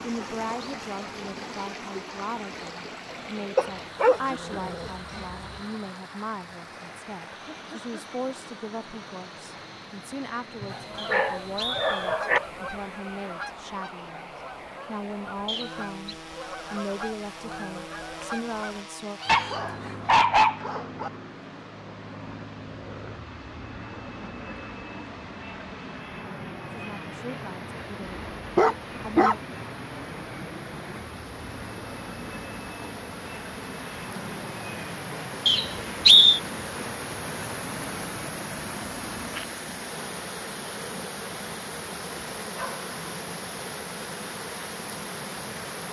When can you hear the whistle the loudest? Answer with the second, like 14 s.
36 s.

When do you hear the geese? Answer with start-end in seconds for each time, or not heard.
10.7-20.1.